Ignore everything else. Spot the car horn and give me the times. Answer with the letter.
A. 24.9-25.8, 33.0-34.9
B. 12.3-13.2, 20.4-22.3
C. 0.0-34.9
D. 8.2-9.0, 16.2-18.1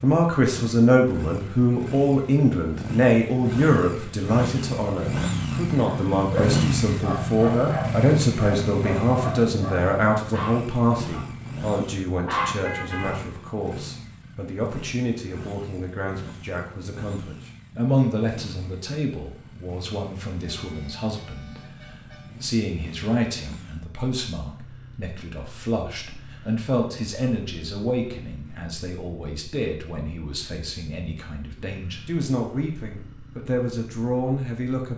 B.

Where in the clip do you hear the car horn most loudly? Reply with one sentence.
The loudest moment of the car horn is at 13 seconds.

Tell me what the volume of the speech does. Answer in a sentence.
The loudness of the speech goes down.